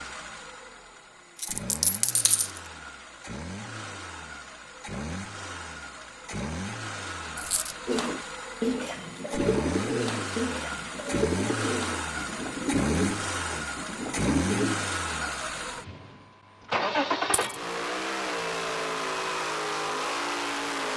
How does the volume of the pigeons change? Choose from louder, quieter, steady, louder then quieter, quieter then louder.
steady.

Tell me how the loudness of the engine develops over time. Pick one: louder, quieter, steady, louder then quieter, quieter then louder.
louder.